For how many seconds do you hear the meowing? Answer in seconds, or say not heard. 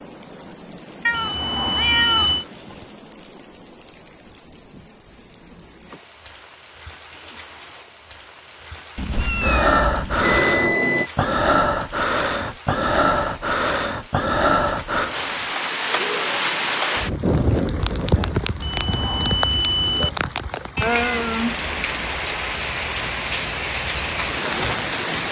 5 s.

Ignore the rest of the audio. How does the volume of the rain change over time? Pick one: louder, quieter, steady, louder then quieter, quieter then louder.
louder.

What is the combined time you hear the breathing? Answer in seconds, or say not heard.
7 s.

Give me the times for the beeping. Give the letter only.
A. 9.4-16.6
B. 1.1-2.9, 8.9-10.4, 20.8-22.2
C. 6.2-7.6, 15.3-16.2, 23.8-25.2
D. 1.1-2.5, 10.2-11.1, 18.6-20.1
D.